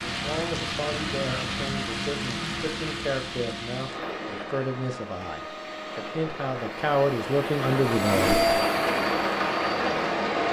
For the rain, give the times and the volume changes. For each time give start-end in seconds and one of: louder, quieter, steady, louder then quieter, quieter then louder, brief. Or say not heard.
0.0-10.4 quieter then louder.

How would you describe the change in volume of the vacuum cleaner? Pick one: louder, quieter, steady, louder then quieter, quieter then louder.
louder.